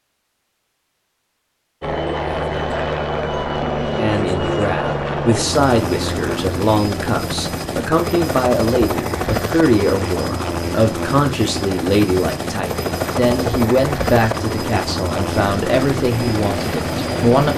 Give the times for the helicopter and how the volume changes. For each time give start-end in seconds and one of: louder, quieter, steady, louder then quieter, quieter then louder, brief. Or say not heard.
1.8-17.5 steady.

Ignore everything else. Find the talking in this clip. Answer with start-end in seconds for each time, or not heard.
4.0-17.5.